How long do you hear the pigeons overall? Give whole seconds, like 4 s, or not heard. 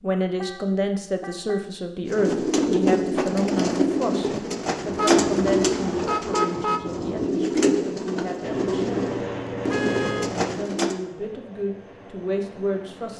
9 s.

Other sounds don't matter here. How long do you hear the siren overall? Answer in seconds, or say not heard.
not heard.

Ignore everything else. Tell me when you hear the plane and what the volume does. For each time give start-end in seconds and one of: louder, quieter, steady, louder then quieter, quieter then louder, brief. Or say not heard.
8.4-13.1 quieter.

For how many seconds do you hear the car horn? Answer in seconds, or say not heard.
4 s.